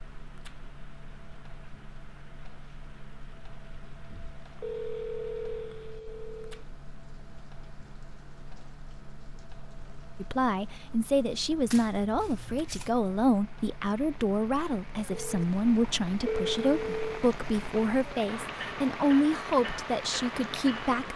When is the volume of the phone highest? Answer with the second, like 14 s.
16 s.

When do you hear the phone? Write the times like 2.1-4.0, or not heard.
4.0-6.7, 15.1-17.2.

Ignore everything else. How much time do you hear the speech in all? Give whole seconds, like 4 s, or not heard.
11 s.